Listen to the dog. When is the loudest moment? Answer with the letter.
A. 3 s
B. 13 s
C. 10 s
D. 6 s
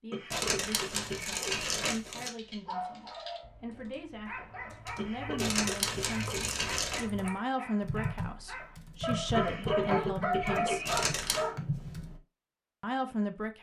C.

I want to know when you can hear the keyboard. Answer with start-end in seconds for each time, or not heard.
2.3-12.2.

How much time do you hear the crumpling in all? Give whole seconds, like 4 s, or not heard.
4 s.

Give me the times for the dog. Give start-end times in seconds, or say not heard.
2.6-11.6.